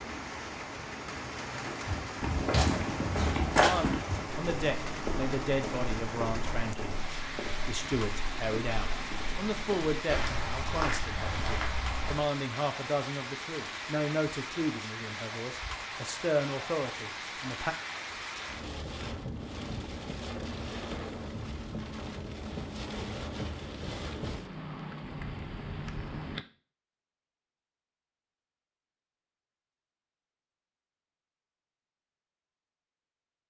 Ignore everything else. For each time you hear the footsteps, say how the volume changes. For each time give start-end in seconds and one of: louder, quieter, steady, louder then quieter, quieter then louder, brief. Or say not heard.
1.8-12.2 quieter then louder.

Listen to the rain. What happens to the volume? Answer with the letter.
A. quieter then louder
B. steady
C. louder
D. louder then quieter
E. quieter
B.